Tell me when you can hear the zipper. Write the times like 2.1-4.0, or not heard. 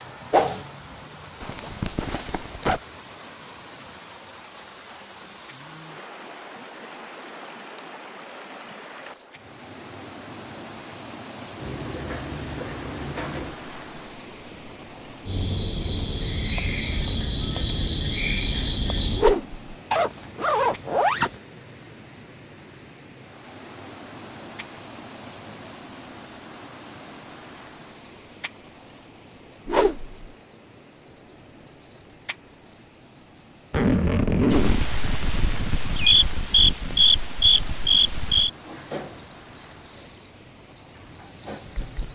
1.4-2.8, 19.9-21.4, 33.7-34.9.